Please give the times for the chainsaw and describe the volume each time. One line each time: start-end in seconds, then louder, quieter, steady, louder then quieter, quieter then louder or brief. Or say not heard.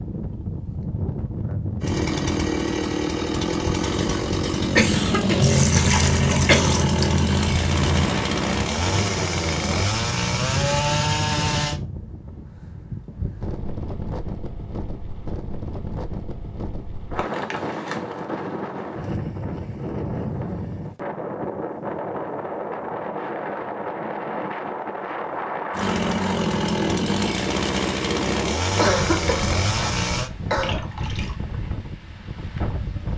1.8-11.8 steady
25.7-30.3 steady.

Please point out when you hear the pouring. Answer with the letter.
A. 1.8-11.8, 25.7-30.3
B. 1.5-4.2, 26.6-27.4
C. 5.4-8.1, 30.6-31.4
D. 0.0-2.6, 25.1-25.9
C.